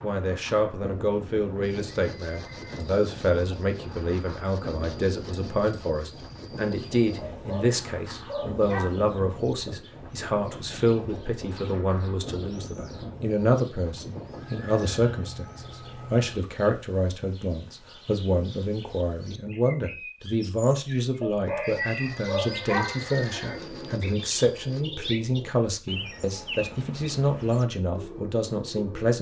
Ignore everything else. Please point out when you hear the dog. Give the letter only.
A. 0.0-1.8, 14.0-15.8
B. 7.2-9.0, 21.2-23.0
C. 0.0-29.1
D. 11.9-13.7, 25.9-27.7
B.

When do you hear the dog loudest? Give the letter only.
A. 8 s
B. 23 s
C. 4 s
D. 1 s
B.